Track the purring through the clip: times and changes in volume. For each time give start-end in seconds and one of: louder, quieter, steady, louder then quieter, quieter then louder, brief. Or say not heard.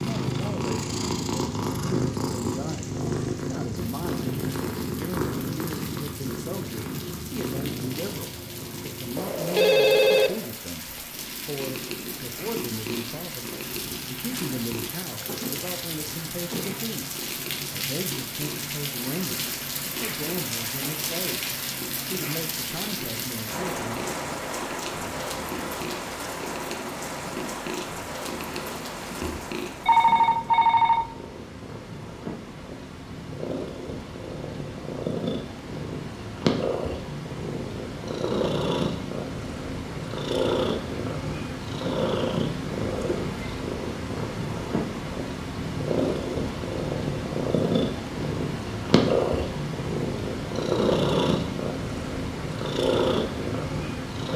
0.0-54.3 quieter then louder.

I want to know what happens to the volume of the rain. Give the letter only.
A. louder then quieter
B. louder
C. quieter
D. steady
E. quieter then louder
B.